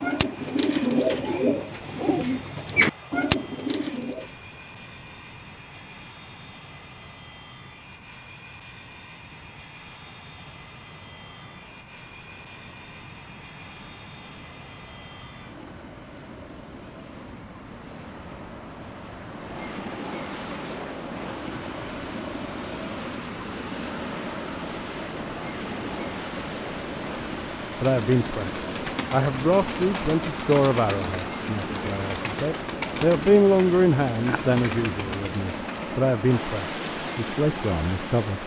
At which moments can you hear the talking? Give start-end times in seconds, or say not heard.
27.8-38.4.